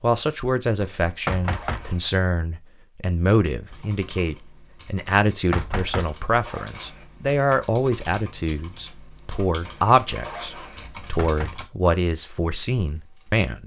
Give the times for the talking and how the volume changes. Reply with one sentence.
You can hear the talking from 0.0 to 13.6 s, at a steady volume.